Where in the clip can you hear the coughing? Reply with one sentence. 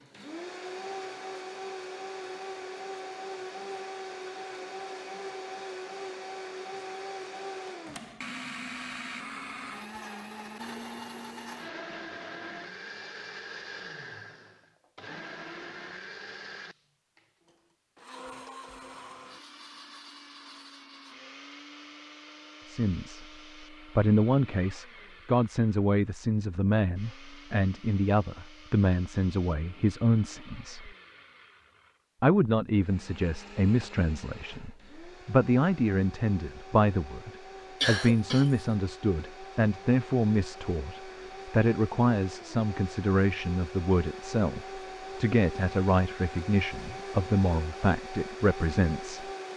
You can hear the coughing from 37.8 to 38.5 s.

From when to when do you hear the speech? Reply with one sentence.
The speech can be heard from 22.6 to 23.2 s, from 23.9 to 30.9 s and from 32.2 to 49.2 s.